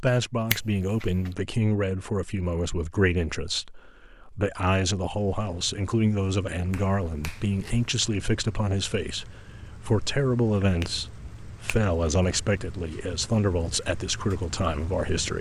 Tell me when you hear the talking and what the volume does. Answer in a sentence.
You can hear the talking from 0.0 to 15.3 s, at a steady volume.